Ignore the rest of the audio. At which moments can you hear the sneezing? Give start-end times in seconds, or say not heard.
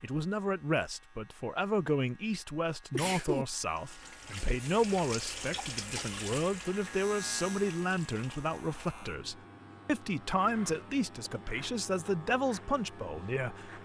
2.9-3.5.